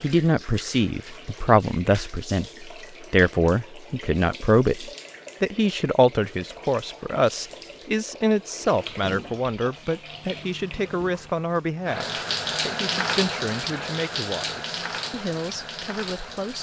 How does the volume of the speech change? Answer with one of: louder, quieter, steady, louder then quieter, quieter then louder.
quieter.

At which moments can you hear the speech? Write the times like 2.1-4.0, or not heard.
0.0-16.5.